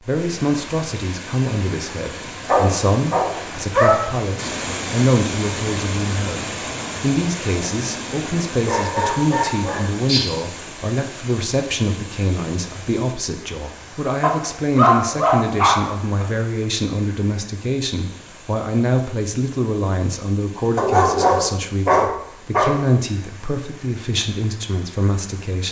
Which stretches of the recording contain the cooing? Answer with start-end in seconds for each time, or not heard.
not heard.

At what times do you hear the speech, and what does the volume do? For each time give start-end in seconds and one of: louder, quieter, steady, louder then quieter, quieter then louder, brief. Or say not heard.
0.0-25.6 steady.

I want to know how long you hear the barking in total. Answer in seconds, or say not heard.
7 s.